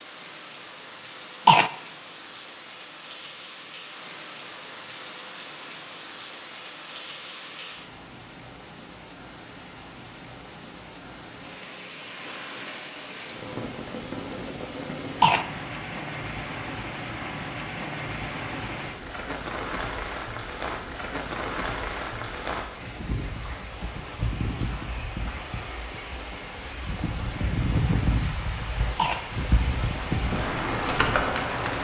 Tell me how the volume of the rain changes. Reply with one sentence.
The volume of the rain goes up.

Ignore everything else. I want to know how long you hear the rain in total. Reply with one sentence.
The rain can be heard for 32 seconds in total.